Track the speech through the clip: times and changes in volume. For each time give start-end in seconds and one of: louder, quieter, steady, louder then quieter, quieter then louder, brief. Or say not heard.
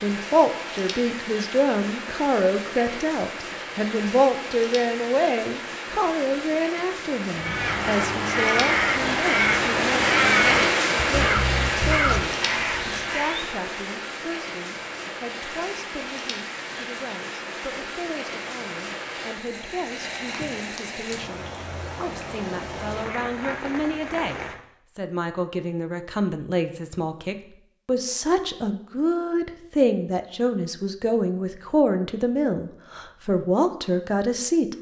0.0-34.7 quieter then louder.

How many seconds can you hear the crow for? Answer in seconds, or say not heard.
6 s.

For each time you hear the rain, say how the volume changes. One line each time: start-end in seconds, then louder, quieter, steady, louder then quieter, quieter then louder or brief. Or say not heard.
0.0-24.6 louder then quieter.